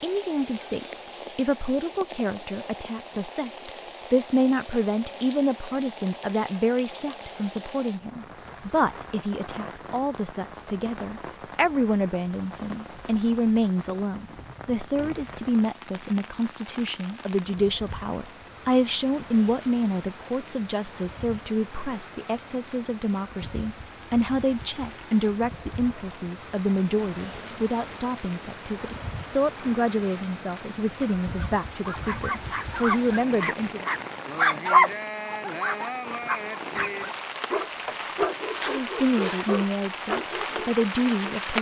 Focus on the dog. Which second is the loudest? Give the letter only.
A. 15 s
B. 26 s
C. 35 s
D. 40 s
C.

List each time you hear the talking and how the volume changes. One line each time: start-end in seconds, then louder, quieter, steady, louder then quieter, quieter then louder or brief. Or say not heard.
0.0-33.9 steady
38.6-41.5 brief.